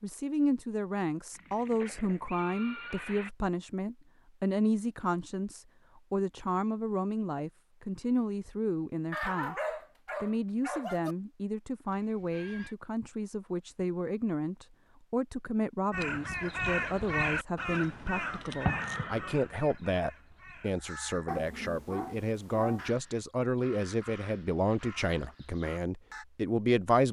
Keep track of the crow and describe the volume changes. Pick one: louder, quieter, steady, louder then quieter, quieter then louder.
quieter.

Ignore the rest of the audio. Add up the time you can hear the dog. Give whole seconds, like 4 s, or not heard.
4 s.